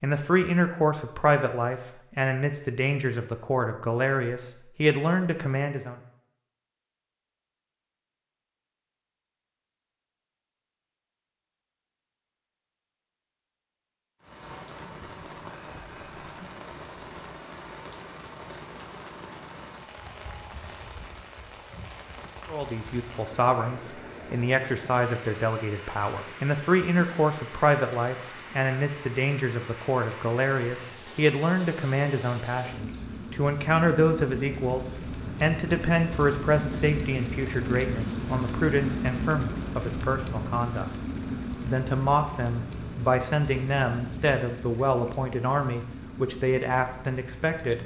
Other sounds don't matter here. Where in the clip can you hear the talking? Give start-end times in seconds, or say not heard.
0.0-6.0, 22.4-34.8, 35.4-40.9, 41.6-47.8.